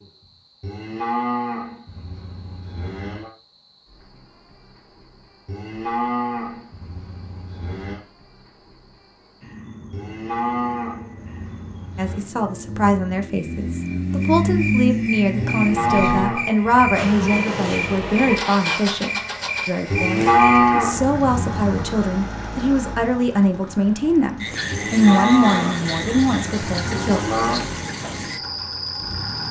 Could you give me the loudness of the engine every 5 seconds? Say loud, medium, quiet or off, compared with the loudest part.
off, off, loud, loud, medium, medium.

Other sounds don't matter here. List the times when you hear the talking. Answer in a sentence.
You can hear the talking from 11.9 to 27.2 s.